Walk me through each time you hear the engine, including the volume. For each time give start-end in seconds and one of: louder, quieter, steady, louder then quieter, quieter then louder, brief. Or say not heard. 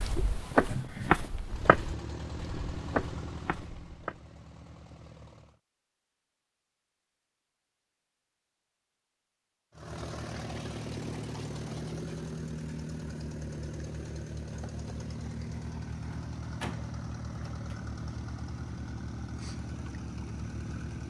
1.4-5.6 quieter
9.7-21.0 steady.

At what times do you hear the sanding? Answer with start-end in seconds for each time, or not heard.
not heard.